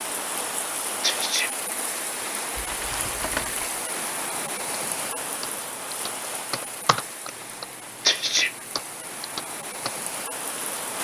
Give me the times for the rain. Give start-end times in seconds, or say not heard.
0.0-10.9.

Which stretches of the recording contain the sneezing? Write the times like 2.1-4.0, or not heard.
1.0-1.5, 8.1-8.6.